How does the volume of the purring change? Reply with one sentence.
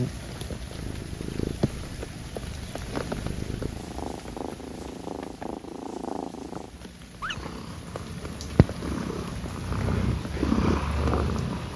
The volume of the purring goes up.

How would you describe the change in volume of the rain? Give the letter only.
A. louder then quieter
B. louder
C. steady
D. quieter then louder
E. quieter
D.